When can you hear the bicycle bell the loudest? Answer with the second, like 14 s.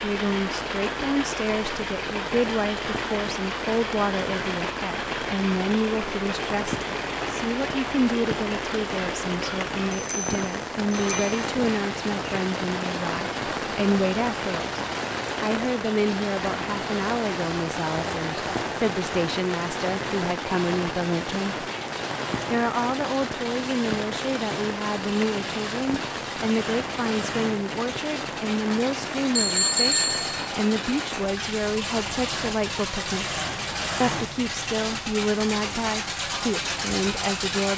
30 s.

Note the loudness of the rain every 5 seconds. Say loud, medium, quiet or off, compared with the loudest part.
loud, loud, loud, loud, loud, loud, medium, medium.